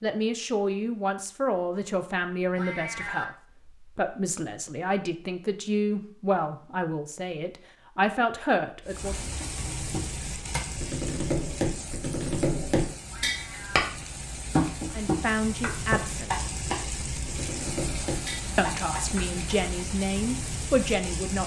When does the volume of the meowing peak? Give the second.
3 s.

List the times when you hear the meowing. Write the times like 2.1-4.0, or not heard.
2.5-3.2, 13.1-13.8.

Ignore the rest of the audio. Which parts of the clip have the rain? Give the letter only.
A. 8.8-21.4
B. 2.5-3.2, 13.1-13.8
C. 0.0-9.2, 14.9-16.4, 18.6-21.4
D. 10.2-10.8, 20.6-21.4
A.